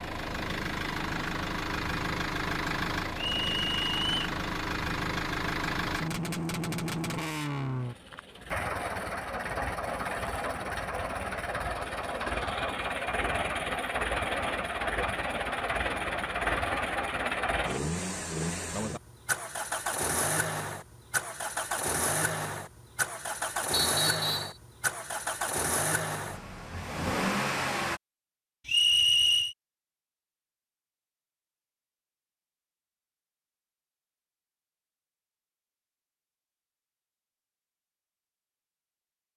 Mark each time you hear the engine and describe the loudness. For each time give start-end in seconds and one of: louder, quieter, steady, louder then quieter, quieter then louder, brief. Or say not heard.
0.0-28.0 steady.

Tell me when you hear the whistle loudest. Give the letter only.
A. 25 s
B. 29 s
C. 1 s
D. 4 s
B.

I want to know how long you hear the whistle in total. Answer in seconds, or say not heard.
3 s.